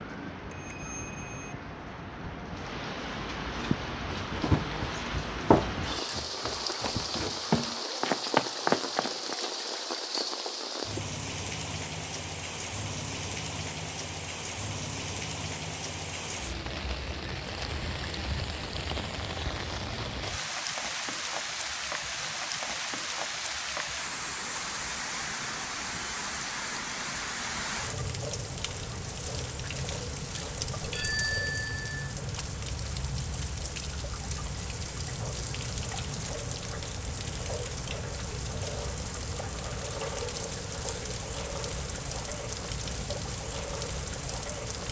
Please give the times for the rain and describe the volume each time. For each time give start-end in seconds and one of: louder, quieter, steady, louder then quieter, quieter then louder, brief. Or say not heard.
0.0-44.8 steady.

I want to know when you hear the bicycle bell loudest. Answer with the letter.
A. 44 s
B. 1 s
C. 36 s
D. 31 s
D.